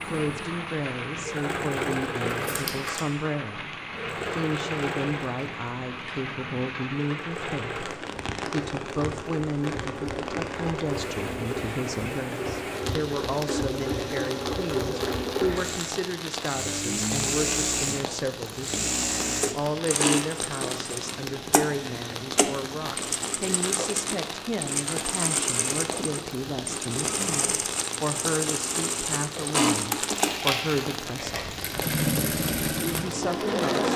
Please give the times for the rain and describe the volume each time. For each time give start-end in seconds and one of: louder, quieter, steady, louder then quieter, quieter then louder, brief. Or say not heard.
0.0-33.9 steady.